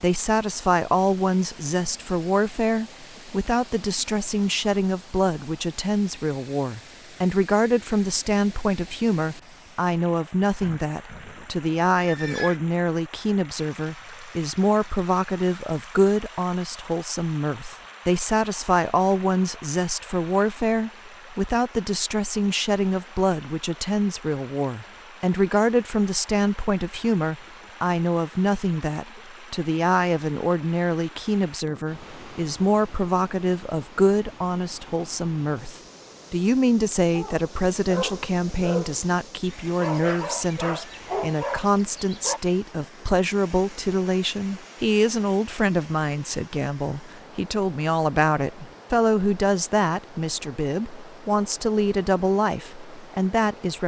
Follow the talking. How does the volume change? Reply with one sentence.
The loudness of the talking stays about the same.